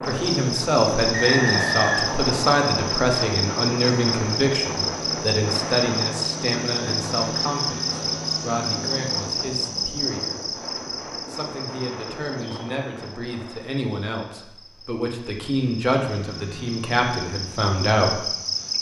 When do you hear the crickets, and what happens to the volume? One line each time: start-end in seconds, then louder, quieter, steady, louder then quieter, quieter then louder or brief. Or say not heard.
0.0-18.7 quieter then louder.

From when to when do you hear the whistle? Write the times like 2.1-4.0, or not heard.
1.1-2.6.